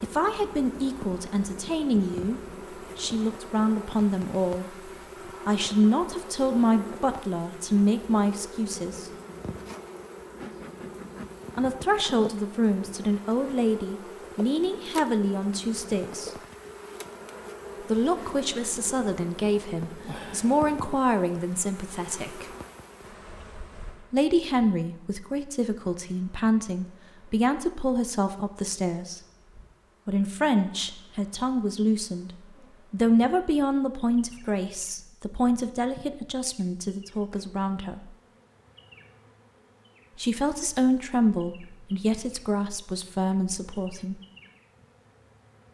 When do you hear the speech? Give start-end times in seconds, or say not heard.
0.0-9.1, 11.6-16.3, 17.8-22.4, 24.1-29.2, 30.1-38.1, 40.1-44.2.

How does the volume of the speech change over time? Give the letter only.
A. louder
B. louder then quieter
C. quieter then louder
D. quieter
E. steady
E.